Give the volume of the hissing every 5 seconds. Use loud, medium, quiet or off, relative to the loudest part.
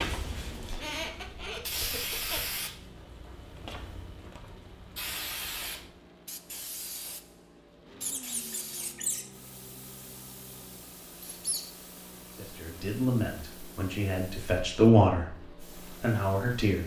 loud, loud, quiet, quiet.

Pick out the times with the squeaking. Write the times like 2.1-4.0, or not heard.
0.7-2.5, 8.0-9.2, 11.2-11.6.